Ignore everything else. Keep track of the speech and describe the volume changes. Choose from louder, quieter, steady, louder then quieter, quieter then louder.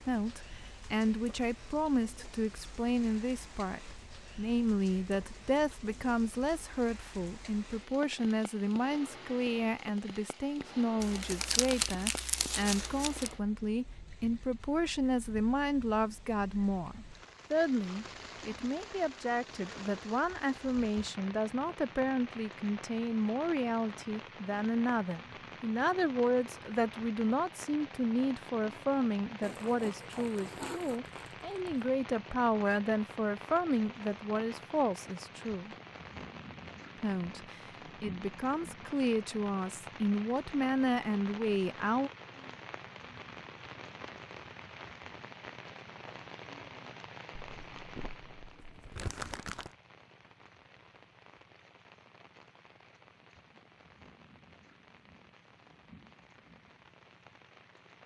steady.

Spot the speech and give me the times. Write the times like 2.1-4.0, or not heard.
0.0-35.7, 37.0-42.1.